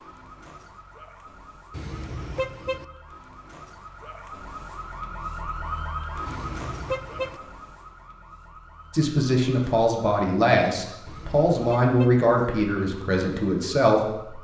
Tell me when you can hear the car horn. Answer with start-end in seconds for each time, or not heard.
1.7-2.9, 6.2-7.4, 11.1-12.2.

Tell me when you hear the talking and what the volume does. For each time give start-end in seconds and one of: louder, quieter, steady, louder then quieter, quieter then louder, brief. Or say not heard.
8.9-14.3 steady.